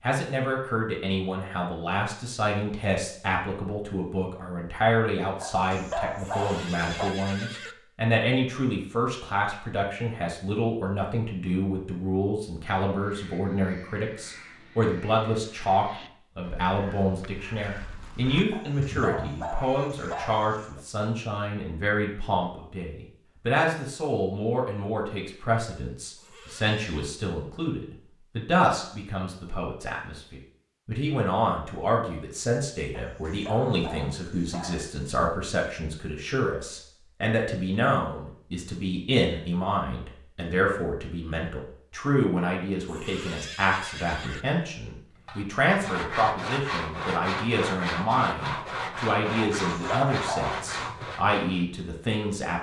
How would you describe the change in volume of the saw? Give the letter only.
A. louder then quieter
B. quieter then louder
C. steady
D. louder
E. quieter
C.